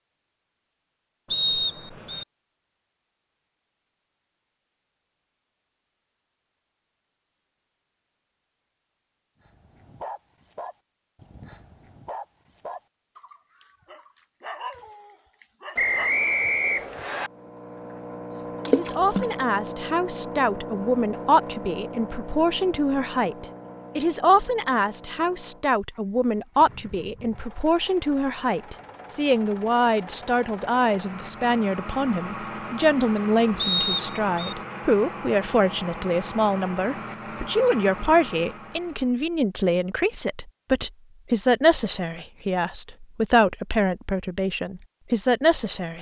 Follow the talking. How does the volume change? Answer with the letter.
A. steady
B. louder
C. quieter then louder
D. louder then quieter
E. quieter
A.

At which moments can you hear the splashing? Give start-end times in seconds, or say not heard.
18.6-19.4.